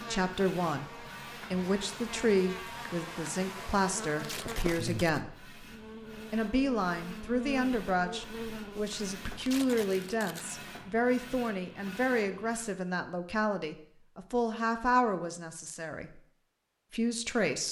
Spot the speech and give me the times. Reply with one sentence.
The speech can be heard from 0.0 to 5.5 s, from 6.3 to 16.2 s and from 16.9 to 17.6 s.